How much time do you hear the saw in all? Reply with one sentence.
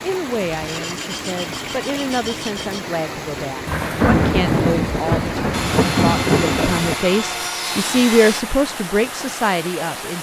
You can hear the saw for 5 seconds altogether.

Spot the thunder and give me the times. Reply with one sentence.
The thunder can be heard from 3.6 to 7.0 s.